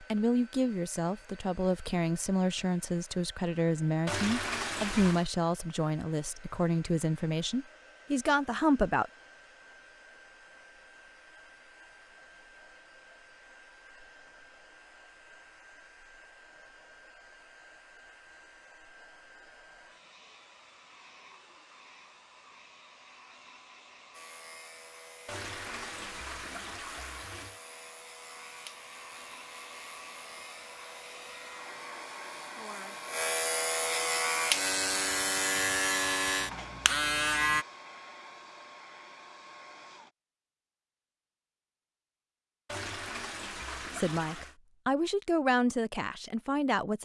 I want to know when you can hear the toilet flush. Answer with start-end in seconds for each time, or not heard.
4.0-5.3, 25.2-27.6, 42.6-44.5.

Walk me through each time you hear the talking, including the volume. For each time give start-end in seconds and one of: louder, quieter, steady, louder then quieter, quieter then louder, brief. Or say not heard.
0.0-9.1 steady
44.0-46.9 brief.